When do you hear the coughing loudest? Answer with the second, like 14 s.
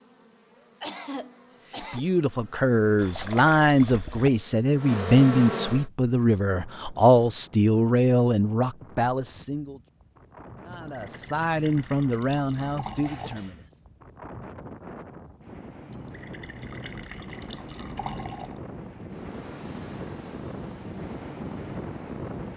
1 s.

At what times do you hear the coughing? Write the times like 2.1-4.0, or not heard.
0.8-2.0, 13.0-13.7.